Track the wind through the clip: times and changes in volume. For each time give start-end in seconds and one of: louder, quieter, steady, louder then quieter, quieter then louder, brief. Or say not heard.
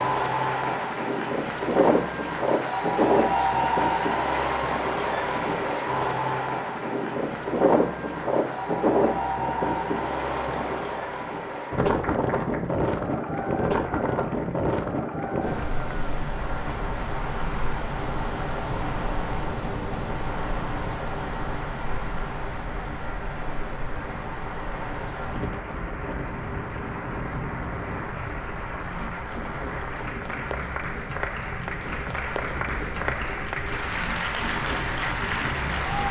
0.0-36.0 quieter.